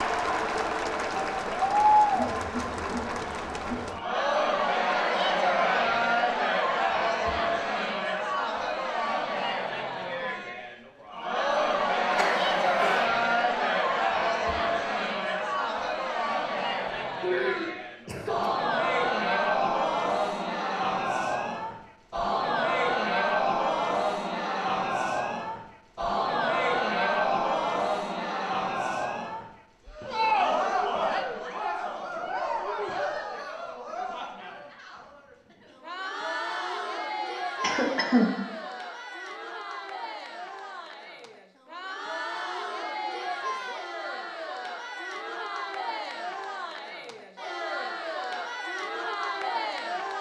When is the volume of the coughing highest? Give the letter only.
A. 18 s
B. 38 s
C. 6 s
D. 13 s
B.